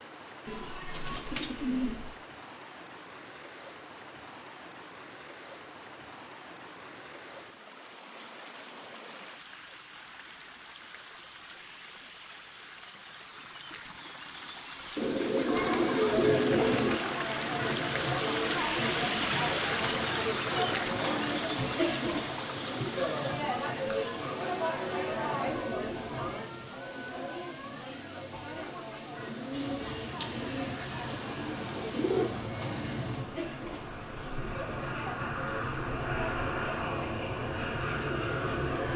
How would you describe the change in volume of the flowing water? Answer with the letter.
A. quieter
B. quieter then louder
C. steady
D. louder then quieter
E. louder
D.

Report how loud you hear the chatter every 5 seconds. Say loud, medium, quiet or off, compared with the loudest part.
off, off, off, loud, loud, medium, medium, medium.